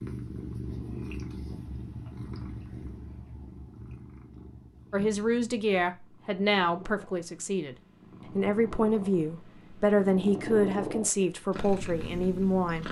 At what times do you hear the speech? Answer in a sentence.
The speech can be heard from 4.9 to 7.8 s and from 8.3 to 12.8 s.